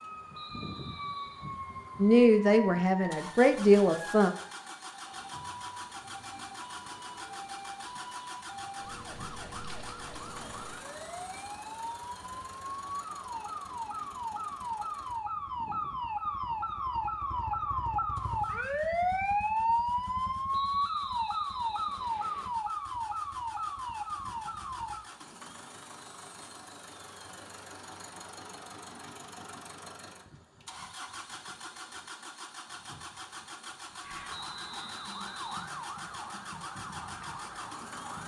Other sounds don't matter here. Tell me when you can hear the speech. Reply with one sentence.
The speech can be heard from 2.0 to 4.3 s.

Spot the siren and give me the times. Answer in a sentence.
The siren can be heard from 0.0 to 25.1 s and from 34.0 to 38.2 s.